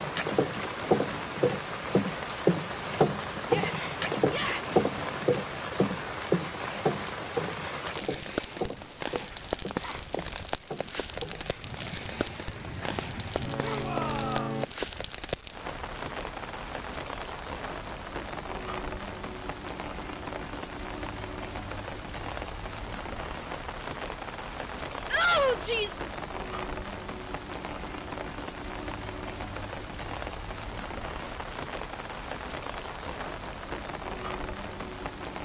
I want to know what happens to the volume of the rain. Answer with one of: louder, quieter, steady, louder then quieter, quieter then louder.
steady.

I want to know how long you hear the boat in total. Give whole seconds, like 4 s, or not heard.
15 s.